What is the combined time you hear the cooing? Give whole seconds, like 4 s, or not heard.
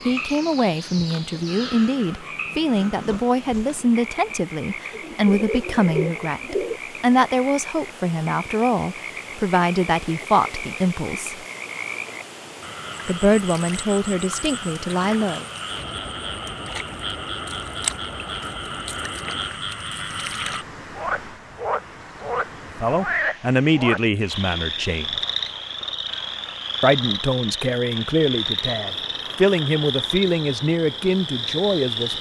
2 s.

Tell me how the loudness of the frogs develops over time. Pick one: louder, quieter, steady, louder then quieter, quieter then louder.
louder.